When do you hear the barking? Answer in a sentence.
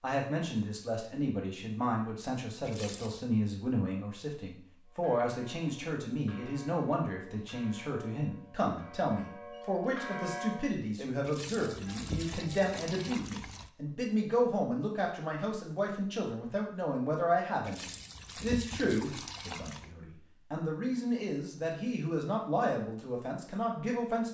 The barking can't be heard in this clip.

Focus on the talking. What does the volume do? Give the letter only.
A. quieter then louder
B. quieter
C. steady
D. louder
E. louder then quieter
C.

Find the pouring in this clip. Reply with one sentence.
The pouring can be heard from 2.6 to 3.2 s, from 11.2 to 13.7 s and from 17.6 to 19.9 s.